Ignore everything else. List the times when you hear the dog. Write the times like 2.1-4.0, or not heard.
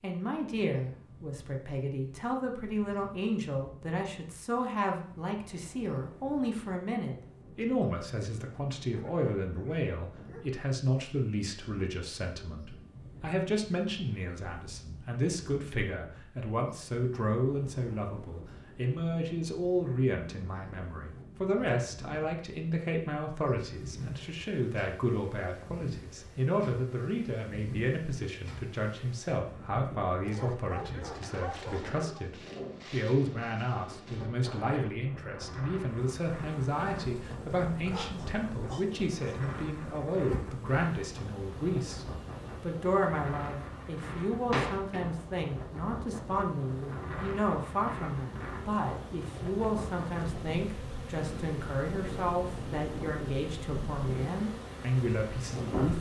8.9-10.7, 30.2-32.2, 37.9-39.4.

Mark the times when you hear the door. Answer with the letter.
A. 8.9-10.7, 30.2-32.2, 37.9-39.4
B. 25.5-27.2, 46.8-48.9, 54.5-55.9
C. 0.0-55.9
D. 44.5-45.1
D.